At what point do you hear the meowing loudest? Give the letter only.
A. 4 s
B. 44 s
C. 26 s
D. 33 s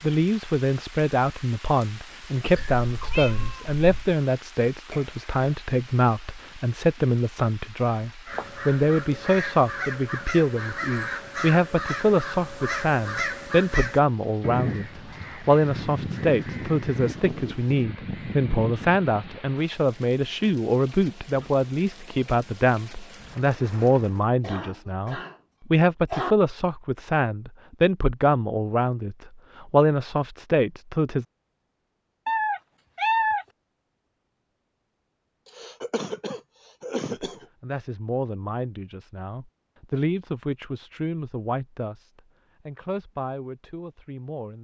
D.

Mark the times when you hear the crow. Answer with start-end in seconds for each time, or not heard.
8.2-19.4.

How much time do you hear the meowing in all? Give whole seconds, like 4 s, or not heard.
3 s.